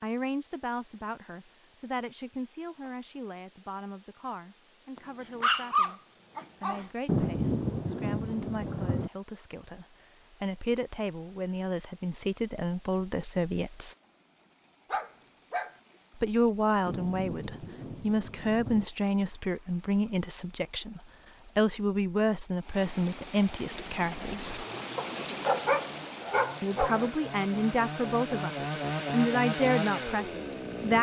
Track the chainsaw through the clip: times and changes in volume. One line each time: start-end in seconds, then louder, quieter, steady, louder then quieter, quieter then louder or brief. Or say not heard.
23.6-30.9 louder.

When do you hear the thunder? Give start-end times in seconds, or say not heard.
7.0-9.1, 16.9-18.9.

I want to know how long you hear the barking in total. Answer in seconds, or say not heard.
5 s.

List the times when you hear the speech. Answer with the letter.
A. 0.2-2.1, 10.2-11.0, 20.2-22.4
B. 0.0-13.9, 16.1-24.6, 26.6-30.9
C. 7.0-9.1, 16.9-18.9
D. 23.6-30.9
B.